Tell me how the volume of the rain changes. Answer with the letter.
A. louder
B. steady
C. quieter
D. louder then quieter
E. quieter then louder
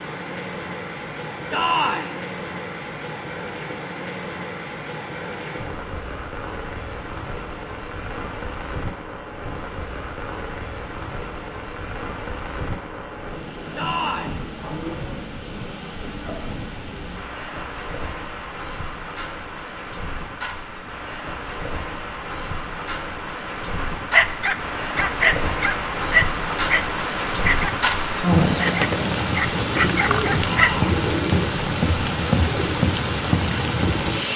A.